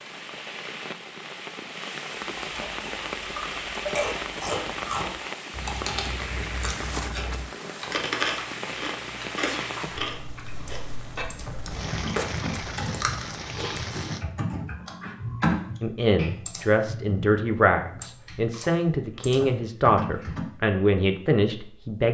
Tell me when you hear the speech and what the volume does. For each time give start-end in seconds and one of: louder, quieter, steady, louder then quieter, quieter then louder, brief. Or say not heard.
15.8-22.0 steady.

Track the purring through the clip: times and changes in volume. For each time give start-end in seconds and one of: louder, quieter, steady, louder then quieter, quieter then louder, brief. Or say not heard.
not heard.